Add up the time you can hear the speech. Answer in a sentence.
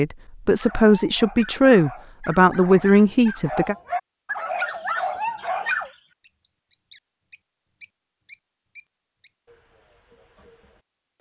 The speech can be heard for 4 seconds in total.